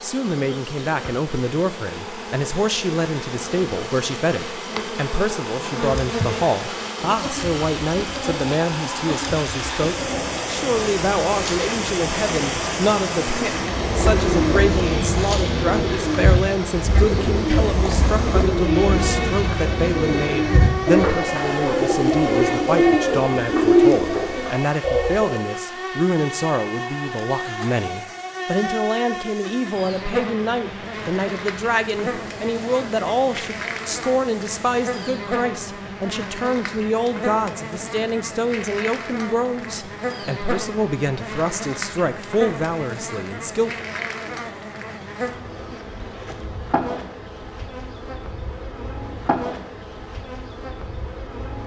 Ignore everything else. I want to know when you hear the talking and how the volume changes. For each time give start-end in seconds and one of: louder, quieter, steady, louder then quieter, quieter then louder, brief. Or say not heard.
0.0-43.9 steady.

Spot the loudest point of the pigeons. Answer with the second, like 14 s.
24 s.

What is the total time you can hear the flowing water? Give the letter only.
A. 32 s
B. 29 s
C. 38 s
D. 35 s
D.